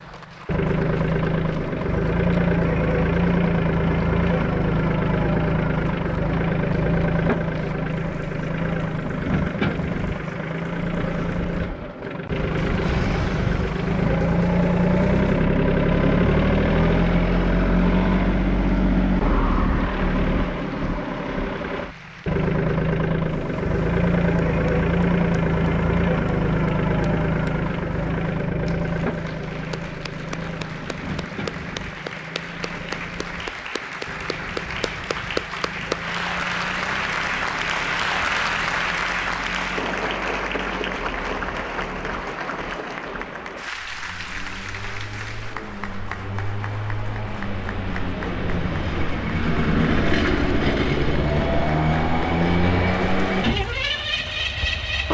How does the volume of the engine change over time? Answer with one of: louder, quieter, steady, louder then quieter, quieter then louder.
quieter then louder.